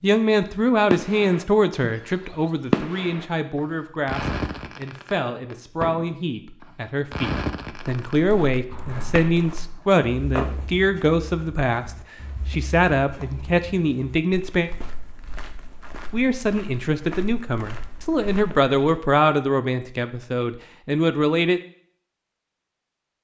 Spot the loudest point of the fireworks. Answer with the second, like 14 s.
3 s.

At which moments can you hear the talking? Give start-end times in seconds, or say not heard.
0.0-14.7, 16.1-21.6.